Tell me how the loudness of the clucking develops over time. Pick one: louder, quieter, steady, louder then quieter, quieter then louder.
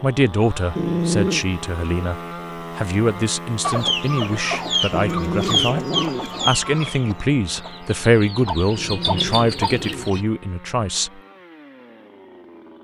quieter then louder.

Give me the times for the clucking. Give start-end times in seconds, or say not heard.
3.6-10.2.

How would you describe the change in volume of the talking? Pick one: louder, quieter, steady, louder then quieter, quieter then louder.
steady.